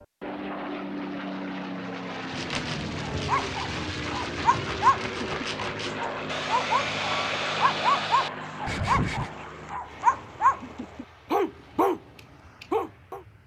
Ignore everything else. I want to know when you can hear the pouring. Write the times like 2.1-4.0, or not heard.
not heard.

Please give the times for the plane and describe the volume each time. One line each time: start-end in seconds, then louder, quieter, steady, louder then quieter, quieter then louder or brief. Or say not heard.
0.0-13.4 quieter.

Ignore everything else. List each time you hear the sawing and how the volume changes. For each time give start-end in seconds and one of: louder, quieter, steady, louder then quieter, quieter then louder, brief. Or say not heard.
2.3-9.3 louder.